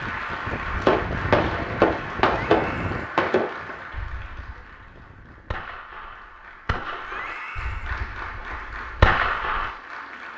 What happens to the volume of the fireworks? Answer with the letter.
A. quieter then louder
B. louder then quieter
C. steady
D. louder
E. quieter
A.